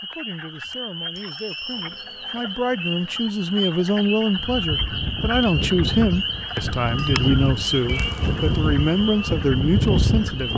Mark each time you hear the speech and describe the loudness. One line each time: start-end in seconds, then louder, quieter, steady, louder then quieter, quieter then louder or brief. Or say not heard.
0.0-10.5 louder.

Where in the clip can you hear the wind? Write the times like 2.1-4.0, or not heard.
4.3-10.5.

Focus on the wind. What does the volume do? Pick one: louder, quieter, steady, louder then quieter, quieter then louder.
louder.